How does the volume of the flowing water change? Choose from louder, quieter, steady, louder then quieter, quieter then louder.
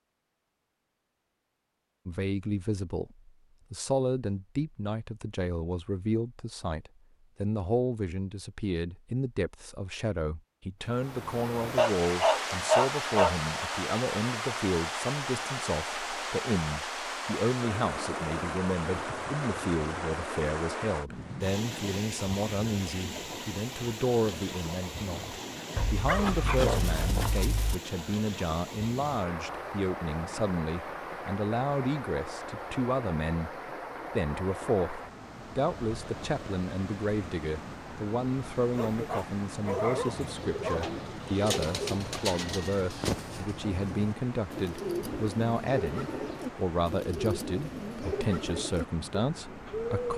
quieter.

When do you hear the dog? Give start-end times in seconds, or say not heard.
11.8-13.3, 25.8-27.8, 38.7-41.0.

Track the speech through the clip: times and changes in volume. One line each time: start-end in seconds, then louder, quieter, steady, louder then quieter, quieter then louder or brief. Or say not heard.
2.0-50.1 steady.